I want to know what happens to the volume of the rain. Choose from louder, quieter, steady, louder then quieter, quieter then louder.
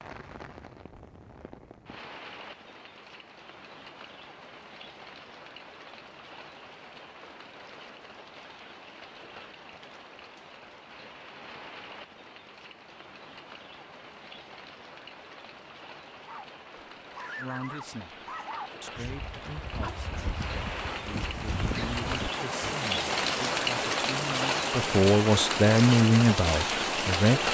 louder.